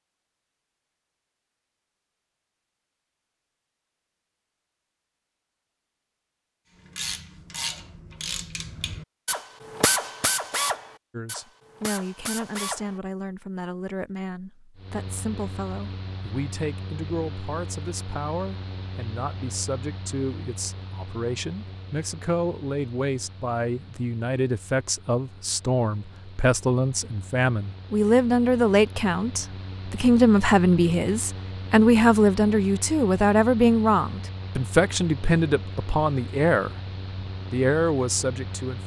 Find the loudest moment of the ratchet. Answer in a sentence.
The volume of the ratchet peaks at 10 seconds.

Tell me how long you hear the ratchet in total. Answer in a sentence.
The ratchet can be heard for 6 seconds in total.